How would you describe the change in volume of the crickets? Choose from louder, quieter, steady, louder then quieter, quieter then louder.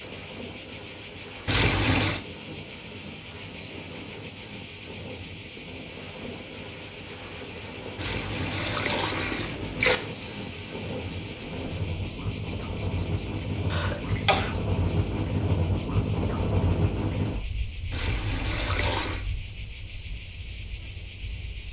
steady.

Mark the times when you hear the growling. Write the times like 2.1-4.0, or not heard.
not heard.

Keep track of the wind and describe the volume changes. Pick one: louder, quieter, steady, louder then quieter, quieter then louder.
louder then quieter.